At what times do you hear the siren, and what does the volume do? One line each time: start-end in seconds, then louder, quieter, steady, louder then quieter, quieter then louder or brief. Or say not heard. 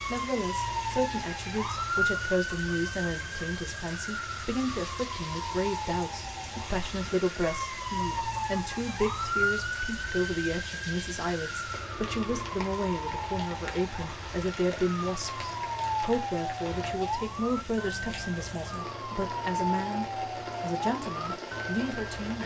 0.0-22.4 steady.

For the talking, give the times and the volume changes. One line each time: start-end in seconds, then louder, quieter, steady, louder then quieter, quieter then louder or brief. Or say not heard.
0.1-22.4 steady.